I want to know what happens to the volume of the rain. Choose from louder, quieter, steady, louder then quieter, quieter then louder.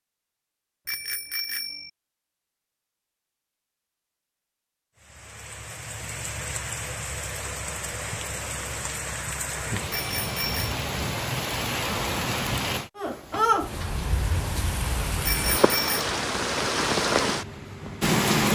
louder.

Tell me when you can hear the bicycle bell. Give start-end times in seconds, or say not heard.
0.8-1.9, 9.9-10.8, 15.2-16.1.